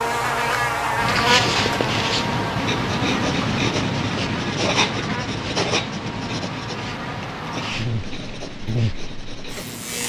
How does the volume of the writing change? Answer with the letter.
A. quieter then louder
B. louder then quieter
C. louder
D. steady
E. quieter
E.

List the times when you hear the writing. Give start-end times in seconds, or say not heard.
0.9-10.0.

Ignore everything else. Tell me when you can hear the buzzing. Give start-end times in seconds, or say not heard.
0.0-10.0.